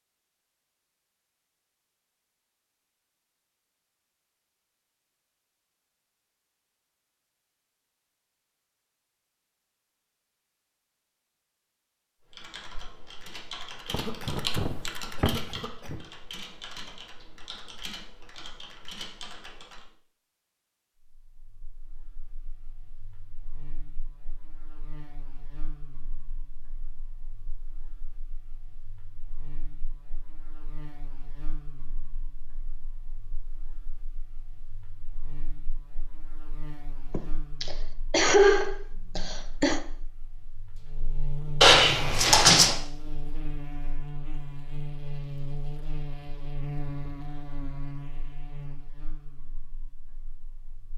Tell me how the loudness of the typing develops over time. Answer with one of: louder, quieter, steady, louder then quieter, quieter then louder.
louder then quieter.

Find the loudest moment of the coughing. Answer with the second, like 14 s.
38 s.